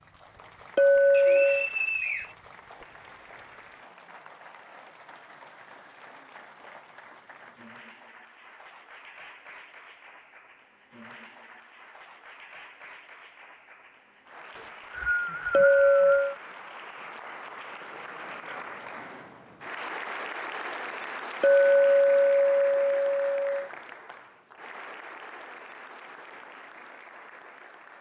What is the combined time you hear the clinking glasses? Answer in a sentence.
You can hear the clinking glasses for 4 seconds altogether.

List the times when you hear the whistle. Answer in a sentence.
You can hear the whistle from 1.1 to 2.4 s and from 14.6 to 16.4 s.